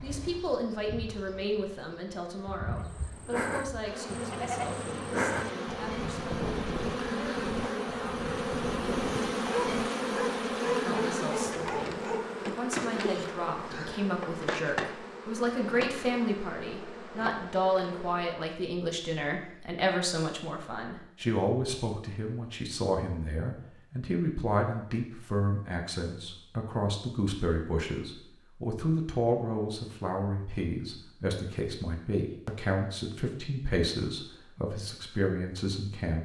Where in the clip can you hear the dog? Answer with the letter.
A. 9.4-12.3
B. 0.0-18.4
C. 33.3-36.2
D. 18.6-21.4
A.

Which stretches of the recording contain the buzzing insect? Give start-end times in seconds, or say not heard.
0.0-18.4.